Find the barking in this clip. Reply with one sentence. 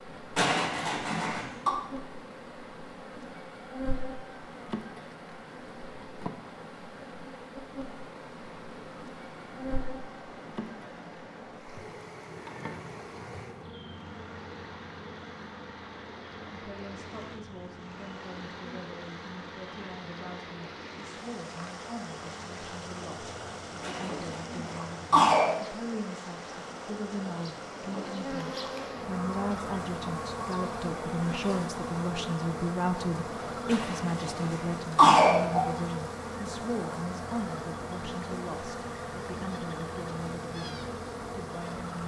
The barking can't be heard in this clip.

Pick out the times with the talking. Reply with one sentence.
You can hear the talking from 16.5 to 42.0 s.